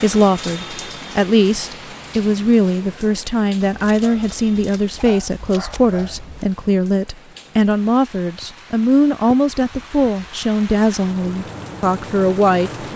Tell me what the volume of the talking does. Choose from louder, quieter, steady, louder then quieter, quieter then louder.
steady.